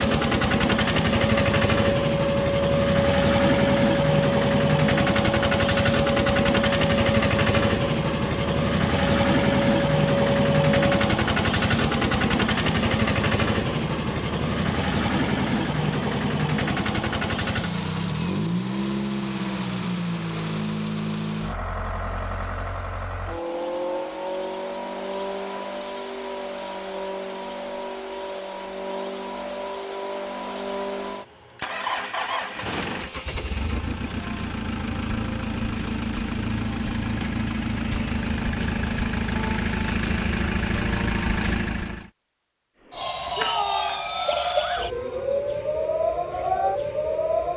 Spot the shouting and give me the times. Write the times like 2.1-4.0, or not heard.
43.4-44.0.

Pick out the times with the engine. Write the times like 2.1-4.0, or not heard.
0.0-42.1.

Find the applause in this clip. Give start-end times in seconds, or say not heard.
not heard.